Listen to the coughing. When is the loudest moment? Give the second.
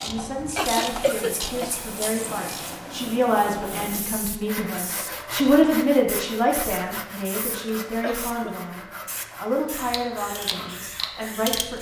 1 s.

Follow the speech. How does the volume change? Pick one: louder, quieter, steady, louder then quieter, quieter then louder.
louder then quieter.